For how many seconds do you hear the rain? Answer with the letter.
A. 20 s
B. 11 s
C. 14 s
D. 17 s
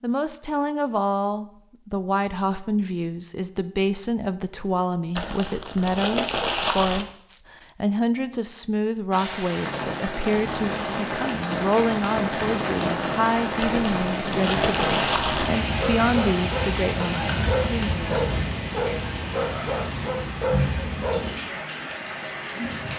C.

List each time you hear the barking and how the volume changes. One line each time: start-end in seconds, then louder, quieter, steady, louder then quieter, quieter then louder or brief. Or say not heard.
15.7-21.6 steady.